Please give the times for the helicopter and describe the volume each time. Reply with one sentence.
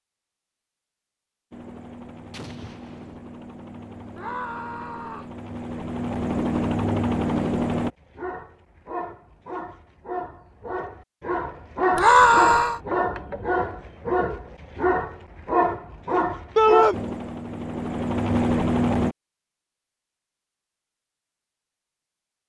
The helicopter can be heard from 1.5 to 7.9 s, getting louder; and briefly from 16.9 to 19.1 s.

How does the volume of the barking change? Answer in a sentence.
The loudness of the barking goes up.